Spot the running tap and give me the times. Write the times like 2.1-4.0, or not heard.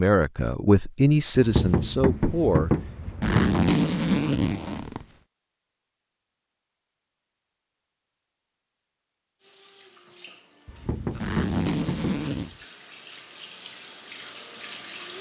9.4-15.1.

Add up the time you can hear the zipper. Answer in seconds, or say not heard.
3 s.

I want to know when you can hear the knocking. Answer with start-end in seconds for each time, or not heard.
1.4-3.6, 10.7-12.6.